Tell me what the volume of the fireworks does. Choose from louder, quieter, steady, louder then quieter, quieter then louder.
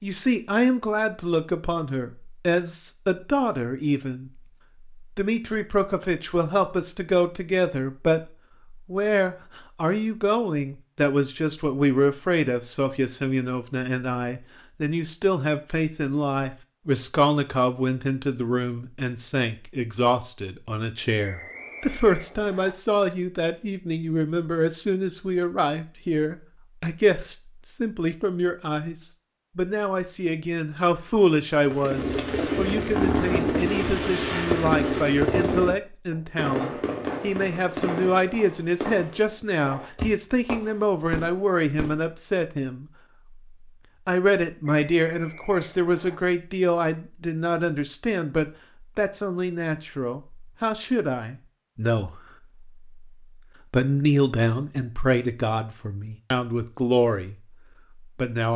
quieter.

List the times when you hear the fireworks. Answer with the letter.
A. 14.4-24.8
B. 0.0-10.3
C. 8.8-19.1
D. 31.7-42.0
D.